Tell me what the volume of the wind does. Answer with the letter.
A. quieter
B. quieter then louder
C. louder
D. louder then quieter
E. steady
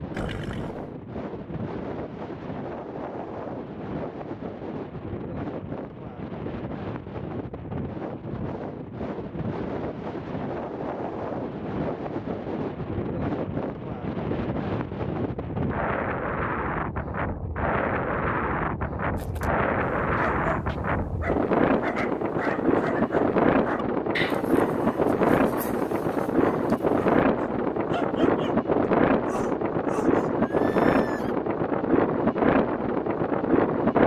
C.